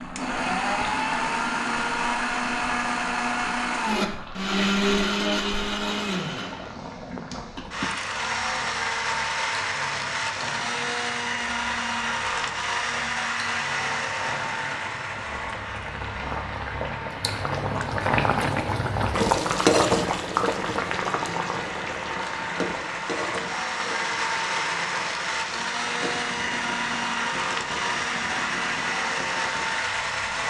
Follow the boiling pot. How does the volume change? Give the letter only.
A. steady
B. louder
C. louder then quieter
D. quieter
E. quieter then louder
C.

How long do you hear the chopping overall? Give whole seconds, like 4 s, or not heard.
not heard.